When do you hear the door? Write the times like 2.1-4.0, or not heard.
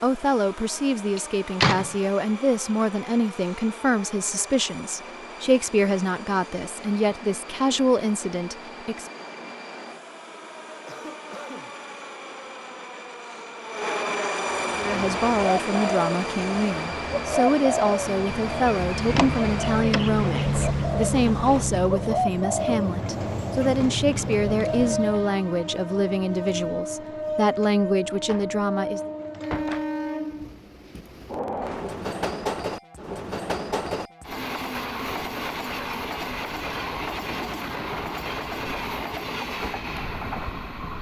1.1-1.9, 19.1-20.1, 28.2-29.9.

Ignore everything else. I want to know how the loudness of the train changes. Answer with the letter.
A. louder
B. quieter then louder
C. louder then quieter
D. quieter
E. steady
A.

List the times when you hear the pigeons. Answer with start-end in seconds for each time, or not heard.
14.5-25.4.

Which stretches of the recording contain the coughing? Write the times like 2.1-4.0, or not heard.
10.8-11.7.